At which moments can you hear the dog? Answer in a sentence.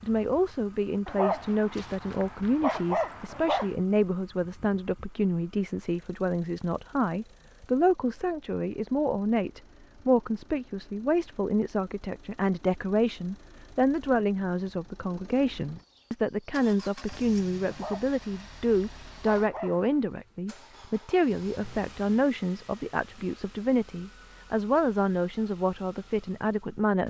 You can hear the dog from 1.1 to 3.8 s and from 17.6 to 19.9 s.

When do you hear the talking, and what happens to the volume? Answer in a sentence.
The talking can be heard from 0.0 to 27.0 s, at a steady volume.